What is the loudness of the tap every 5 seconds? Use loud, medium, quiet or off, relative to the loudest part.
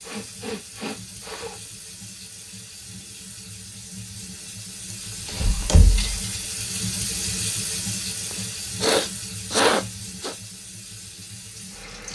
medium, loud, medium.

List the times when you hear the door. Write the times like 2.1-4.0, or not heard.
5.2-6.3.